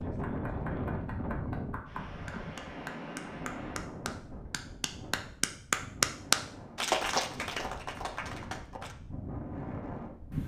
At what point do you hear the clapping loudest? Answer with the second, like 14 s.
6 s.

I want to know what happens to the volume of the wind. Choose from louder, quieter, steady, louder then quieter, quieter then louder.
quieter then louder.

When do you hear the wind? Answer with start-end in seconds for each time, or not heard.
0.0-10.4.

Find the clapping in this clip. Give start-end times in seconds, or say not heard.
0.2-8.9.